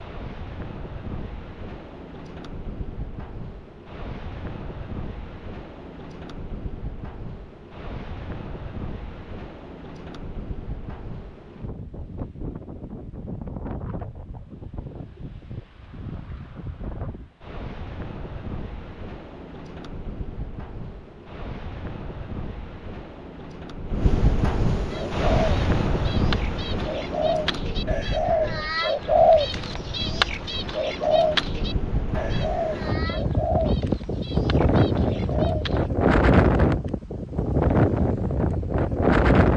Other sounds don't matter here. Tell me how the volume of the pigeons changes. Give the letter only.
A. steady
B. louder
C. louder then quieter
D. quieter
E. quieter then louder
C.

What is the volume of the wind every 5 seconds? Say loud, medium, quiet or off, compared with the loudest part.
quiet, quiet, quiet, quiet, medium, medium, medium, loud.